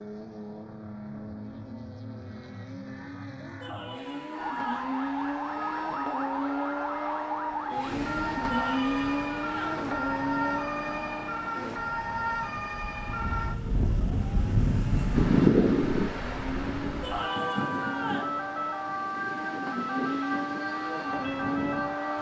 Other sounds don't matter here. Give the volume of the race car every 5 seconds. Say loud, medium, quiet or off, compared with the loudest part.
medium, loud, loud, medium, loud.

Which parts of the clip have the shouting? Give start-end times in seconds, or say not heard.
3.6-5.0, 8.4-9.8, 17.0-18.4.